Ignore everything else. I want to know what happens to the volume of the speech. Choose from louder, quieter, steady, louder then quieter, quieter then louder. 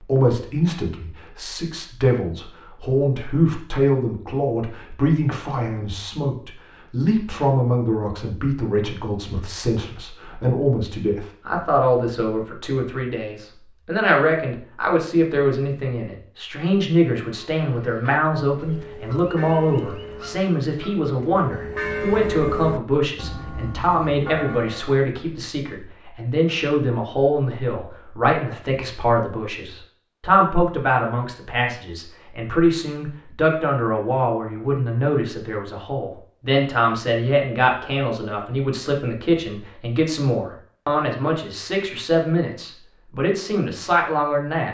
steady.